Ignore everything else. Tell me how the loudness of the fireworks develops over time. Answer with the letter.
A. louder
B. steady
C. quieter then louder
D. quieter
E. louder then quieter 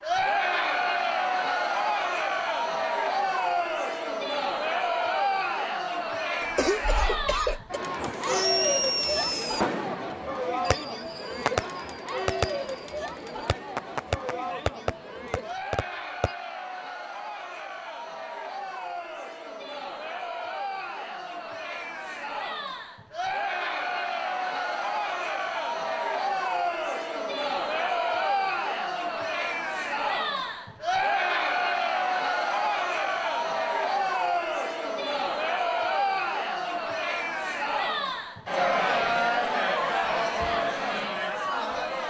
C.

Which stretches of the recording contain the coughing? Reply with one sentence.
You can hear the coughing from 6.4 to 7.8 s.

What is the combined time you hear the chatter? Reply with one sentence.
The chatter can be heard for 42 seconds in total.